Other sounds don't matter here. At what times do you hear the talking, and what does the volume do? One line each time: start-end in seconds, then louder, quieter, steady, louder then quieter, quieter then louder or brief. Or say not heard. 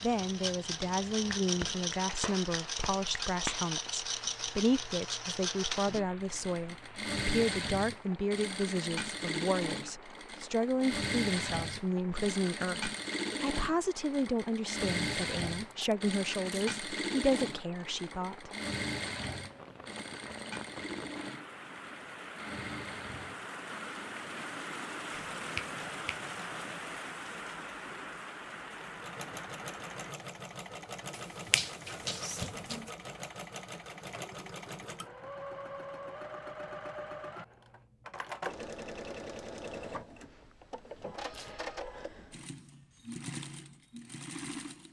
0.0-18.5 steady.